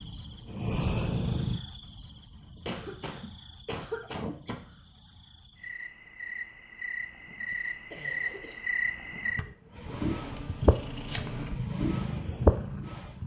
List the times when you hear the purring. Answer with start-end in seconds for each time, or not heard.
0.0-1.6, 9.7-13.2.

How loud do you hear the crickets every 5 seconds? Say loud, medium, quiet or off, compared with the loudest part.
quiet, medium, loud.